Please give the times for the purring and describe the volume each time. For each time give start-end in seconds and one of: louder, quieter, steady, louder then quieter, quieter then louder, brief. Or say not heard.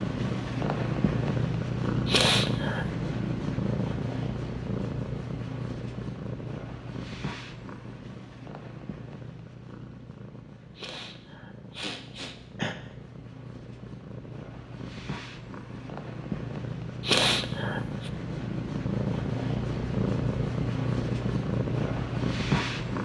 0.0-23.0 quieter then louder.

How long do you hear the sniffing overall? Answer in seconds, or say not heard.
4 s.